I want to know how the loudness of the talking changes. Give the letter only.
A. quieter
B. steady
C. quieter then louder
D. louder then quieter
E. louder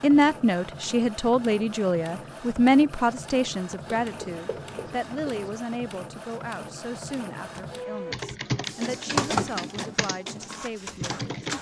A.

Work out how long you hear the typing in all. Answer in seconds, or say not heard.
4 s.